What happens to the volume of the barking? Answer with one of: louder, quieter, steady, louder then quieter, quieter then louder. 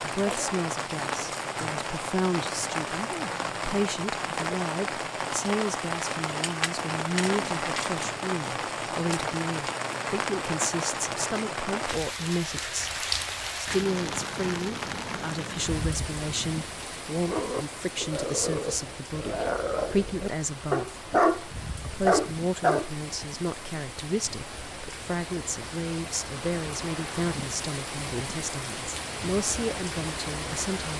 louder.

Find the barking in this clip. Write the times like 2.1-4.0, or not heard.
17.2-22.9.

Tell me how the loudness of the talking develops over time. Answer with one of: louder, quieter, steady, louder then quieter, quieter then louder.
steady.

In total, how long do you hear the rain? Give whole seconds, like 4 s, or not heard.
31 s.